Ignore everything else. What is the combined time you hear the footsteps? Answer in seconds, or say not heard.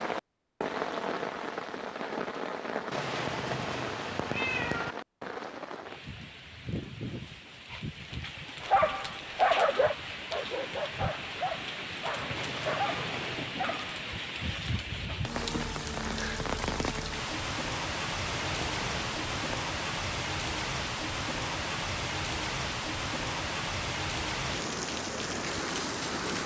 not heard.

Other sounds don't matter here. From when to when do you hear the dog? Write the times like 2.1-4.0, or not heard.
8.6-14.0.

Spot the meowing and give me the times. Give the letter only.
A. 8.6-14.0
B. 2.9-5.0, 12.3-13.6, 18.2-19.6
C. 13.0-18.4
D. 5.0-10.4
B.